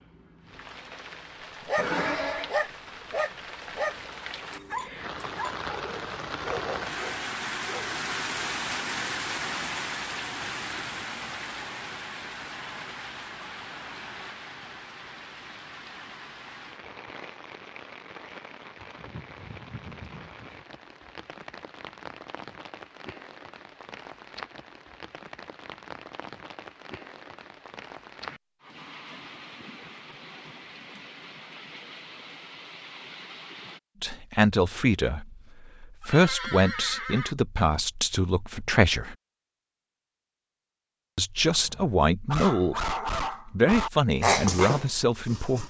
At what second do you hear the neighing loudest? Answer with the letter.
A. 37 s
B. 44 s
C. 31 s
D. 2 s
D.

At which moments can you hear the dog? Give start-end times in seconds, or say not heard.
1.6-8.0, 41.5-45.6.